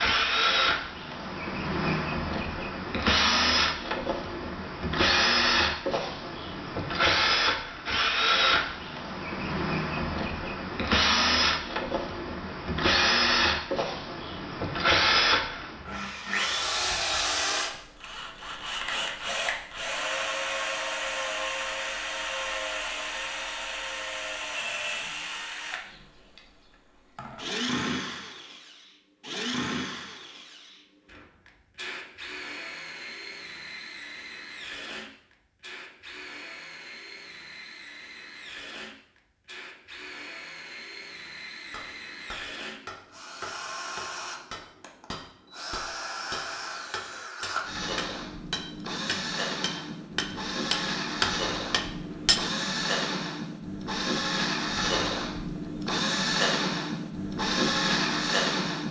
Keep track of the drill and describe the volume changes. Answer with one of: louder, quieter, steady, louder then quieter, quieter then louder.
quieter then louder.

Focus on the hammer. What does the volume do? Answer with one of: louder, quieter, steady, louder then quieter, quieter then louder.
louder.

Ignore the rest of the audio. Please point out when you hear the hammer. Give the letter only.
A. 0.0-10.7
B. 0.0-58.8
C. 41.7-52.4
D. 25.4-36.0
C.